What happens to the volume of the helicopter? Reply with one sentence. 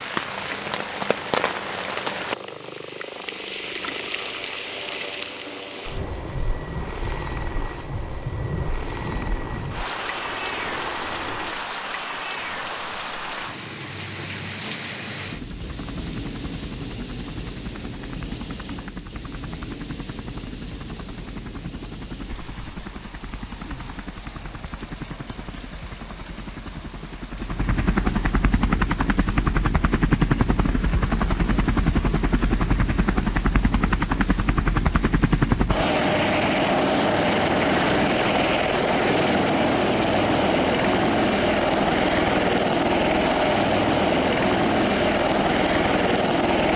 The loudness of the helicopter goes up.